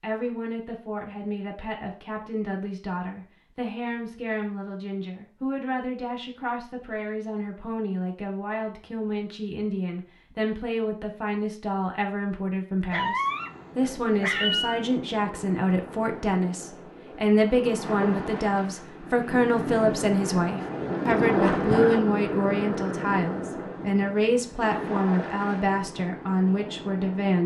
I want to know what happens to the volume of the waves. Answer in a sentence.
The volume of the waves goes up, then down.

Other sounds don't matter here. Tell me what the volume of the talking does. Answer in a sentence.
The volume of the talking goes up.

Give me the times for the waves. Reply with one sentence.
The waves can be heard from 13.1 to 27.4 s.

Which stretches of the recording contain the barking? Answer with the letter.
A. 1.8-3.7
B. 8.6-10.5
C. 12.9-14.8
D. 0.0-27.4
C.